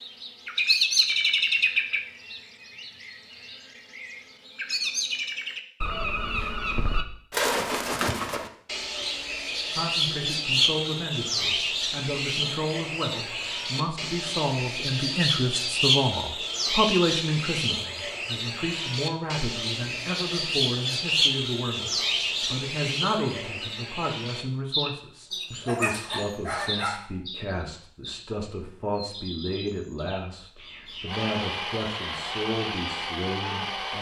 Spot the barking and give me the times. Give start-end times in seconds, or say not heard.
25.3-27.1.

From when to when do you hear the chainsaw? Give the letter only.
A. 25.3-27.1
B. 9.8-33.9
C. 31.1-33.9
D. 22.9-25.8
C.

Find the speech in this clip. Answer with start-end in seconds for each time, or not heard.
9.8-33.9.